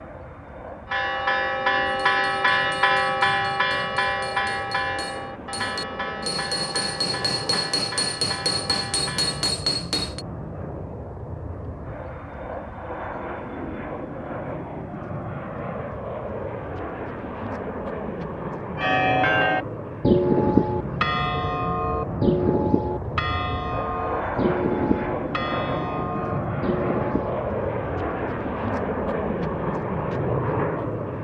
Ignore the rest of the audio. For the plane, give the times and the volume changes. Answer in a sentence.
You can hear the plane from 0.0 to 31.1 s, getting louder.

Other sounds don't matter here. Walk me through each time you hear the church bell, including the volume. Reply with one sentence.
You can hear the church bell from 0.8 to 9.6 s, getting quieter; and from 18.8 to 27.4 s, getting quieter.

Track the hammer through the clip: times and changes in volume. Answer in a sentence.
The hammer can be heard from 1.9 to 10.2 s, getting louder.